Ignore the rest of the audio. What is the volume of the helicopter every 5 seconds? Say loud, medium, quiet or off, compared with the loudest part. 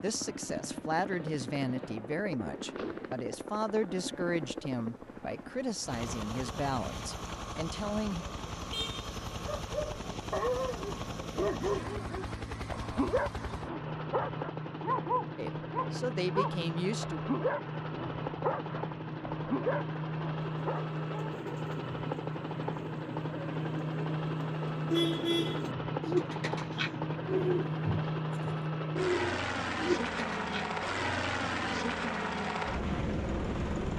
medium, medium, medium, loud, loud, loud, loud.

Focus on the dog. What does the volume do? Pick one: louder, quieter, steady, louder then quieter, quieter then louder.
steady.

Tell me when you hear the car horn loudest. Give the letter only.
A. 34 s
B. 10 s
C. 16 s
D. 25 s
D.